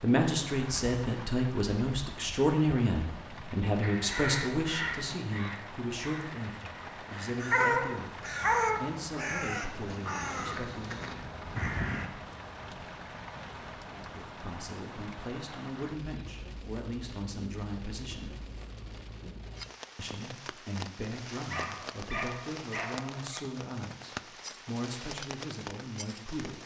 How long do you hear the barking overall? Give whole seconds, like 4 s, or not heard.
3 s.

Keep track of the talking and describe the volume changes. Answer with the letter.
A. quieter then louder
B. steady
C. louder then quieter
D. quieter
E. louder
D.